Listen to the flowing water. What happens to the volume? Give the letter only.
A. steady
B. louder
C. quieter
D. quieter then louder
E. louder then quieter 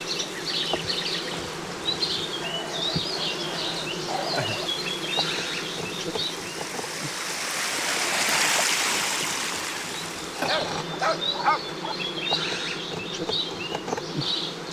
B.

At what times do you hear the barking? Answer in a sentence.
The barking can be heard from 2.4 to 4.7 s and from 10.4 to 11.9 s.